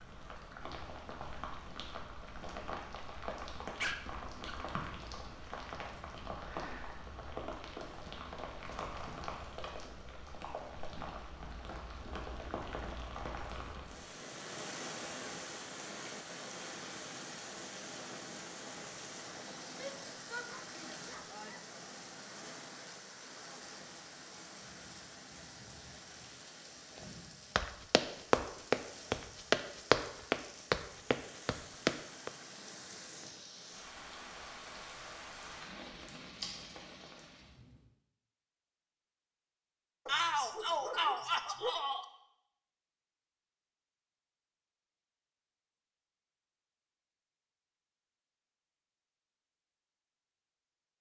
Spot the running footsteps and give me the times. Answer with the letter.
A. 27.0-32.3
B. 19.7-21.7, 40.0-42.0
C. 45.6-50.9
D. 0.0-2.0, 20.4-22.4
A.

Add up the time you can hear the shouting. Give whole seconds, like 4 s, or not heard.
4 s.